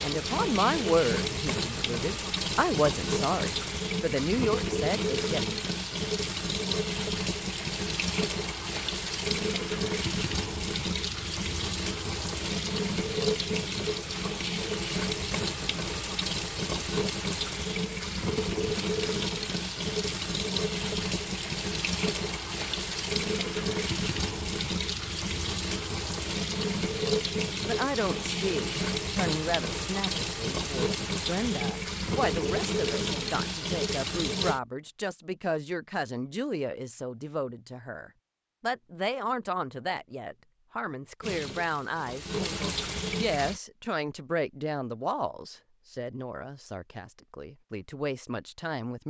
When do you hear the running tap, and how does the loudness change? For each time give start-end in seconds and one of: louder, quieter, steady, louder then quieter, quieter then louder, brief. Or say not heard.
0.0-34.6 steady
41.2-43.6 brief.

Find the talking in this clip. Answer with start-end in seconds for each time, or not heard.
0.0-5.6, 27.6-49.0.